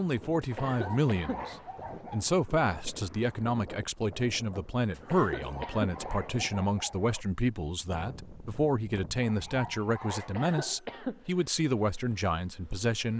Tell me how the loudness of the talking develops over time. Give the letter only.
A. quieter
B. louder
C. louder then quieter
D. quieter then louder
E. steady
E.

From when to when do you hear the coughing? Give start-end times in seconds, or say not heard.
0.4-1.6, 5.0-6.0, 10.2-11.4.